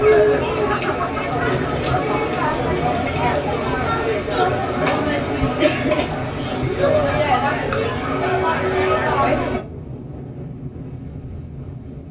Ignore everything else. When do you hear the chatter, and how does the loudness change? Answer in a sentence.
You can hear the chatter from 0.0 to 9.6 s, at a steady volume.